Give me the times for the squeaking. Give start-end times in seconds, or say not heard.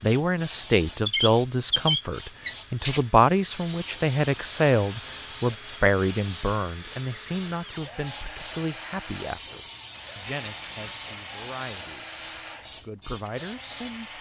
1.1-3.0, 10.2-10.9.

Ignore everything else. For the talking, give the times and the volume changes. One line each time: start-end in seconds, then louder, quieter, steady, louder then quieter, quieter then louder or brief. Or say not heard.
0.0-12.2 quieter
12.8-14.1 brief.